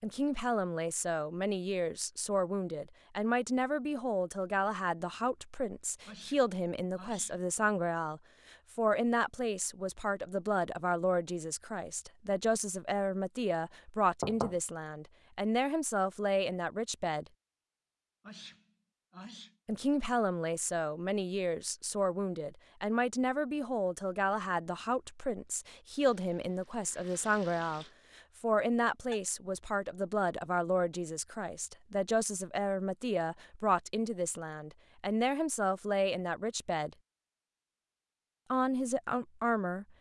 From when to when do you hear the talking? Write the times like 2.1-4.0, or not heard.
0.0-17.2, 19.6-37.0, 38.5-39.9.